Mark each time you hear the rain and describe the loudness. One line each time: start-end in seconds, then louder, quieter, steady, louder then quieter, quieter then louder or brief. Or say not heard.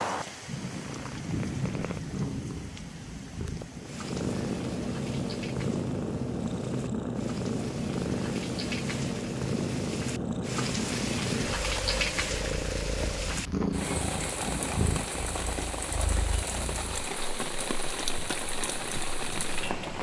0.0-19.9 quieter then louder.